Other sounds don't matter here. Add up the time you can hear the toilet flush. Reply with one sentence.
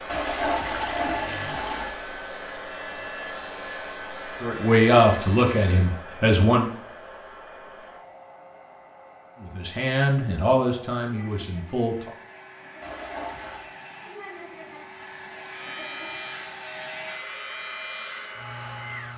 You can hear the toilet flush for 3 seconds altogether.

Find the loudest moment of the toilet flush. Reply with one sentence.
The loudest moment of the toilet flush is at 1 second.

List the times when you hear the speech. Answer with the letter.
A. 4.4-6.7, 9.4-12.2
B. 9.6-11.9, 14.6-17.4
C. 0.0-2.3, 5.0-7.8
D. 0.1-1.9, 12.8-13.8
A.